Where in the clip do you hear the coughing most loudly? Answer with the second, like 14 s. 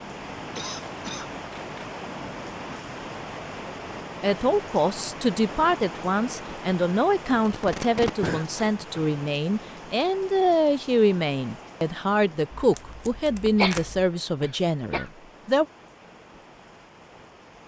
14 s.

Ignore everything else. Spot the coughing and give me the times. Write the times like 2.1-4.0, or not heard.
0.6-1.3, 8.2-9.1, 13.6-15.1.